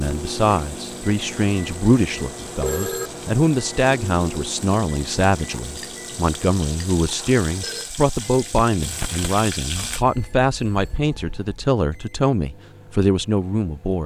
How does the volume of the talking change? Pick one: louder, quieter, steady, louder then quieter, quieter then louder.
steady.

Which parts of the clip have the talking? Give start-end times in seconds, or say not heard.
0.0-14.0.